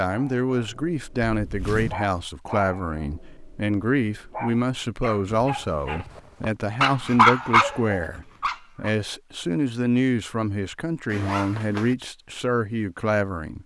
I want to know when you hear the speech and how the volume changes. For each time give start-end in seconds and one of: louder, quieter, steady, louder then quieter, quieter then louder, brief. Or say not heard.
0.0-13.6 steady.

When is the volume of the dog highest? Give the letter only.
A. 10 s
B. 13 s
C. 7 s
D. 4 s
C.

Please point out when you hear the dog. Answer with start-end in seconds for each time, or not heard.
0.1-6.0, 6.8-8.9.